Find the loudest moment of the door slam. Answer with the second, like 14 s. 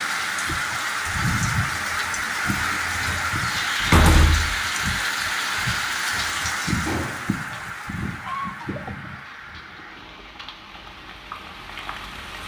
4 s.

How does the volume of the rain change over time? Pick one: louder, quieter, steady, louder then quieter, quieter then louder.
quieter.